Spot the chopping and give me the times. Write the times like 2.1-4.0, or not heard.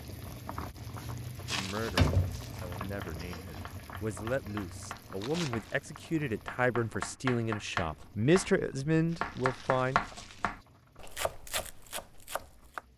2.6-12.8.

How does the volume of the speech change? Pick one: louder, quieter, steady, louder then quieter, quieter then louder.
louder.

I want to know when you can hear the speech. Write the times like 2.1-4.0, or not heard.
1.5-10.2.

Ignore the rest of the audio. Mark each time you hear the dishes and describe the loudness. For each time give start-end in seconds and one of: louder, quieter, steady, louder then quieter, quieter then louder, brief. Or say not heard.
not heard.